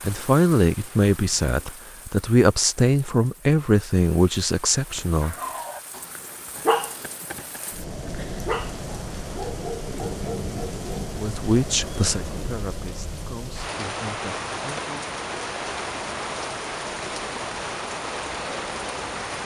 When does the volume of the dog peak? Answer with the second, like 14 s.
7 s.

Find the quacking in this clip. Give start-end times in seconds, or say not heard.
not heard.